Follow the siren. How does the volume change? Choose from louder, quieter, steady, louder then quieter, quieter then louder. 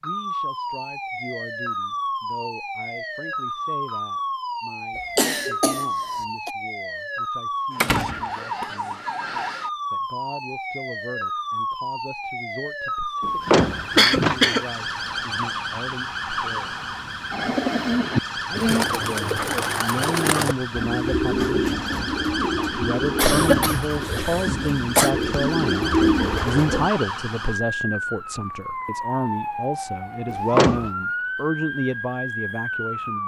steady.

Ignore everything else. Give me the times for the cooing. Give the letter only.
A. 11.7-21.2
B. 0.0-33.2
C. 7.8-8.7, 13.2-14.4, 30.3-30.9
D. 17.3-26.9
D.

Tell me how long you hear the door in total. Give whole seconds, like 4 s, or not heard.
3 s.